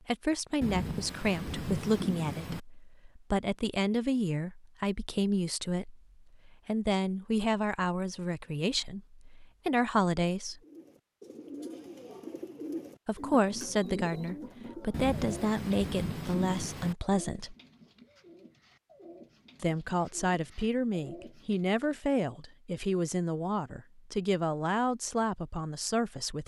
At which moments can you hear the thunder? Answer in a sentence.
You can hear the thunder from 0.6 to 2.6 s and from 14.9 to 16.9 s.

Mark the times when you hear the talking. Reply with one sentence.
The talking can be heard from 0.1 to 10.6 s, from 13.1 to 17.6 s and from 19.6 to 26.4 s.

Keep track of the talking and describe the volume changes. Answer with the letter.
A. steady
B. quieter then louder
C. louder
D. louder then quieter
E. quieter
A.